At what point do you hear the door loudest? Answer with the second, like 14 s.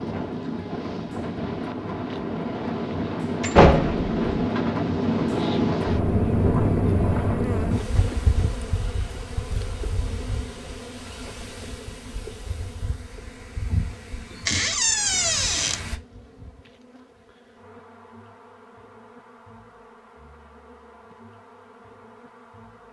4 s.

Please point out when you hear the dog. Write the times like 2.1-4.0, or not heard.
not heard.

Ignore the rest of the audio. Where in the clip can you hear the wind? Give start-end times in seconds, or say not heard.
0.0-16.0.